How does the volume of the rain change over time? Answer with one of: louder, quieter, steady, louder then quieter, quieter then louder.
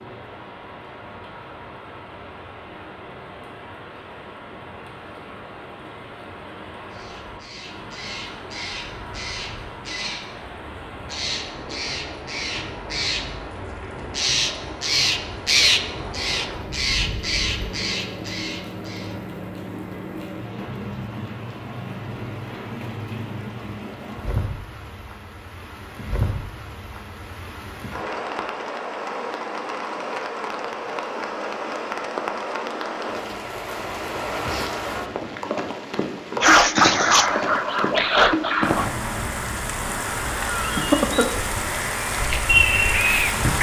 louder.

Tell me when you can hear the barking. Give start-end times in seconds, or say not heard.
36.4-38.9.